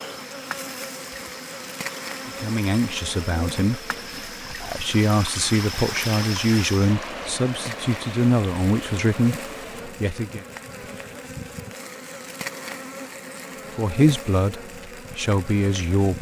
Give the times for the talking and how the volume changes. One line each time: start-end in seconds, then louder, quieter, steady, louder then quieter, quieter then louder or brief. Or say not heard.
2.2-10.4 steady
13.8-16.1 brief.